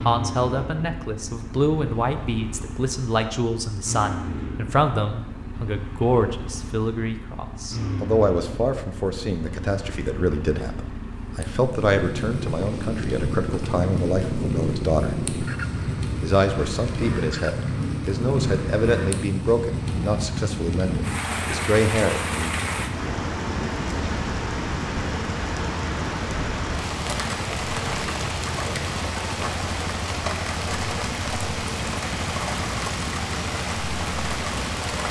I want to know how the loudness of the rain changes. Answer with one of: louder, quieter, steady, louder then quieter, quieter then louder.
steady.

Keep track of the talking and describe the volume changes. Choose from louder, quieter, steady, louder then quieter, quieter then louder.
steady.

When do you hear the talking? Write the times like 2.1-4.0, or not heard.
0.1-15.2, 16.2-22.6.